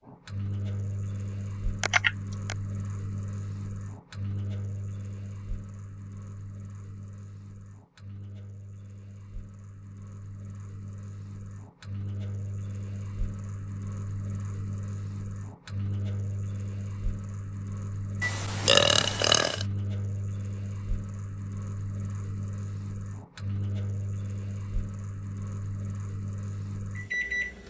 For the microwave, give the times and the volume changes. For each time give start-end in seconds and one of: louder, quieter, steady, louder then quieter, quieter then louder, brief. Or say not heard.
0.1-27.6 quieter then louder.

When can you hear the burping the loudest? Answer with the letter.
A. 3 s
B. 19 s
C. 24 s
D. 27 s
B.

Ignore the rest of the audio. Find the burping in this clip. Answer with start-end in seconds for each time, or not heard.
1.8-2.5, 18.2-19.6.